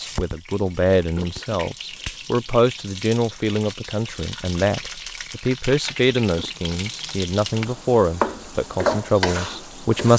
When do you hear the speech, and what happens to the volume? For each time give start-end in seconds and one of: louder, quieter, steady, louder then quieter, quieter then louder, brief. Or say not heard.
0.0-10.1 steady.